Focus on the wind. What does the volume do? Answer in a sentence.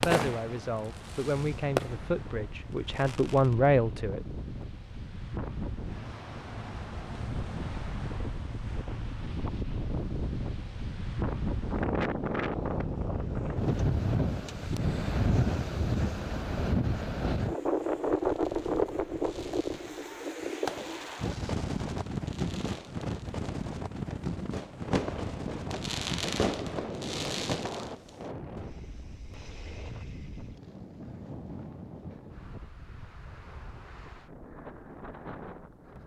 The loudness of the wind goes up, then down.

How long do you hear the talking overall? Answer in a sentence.
You can hear the talking for 4 seconds altogether.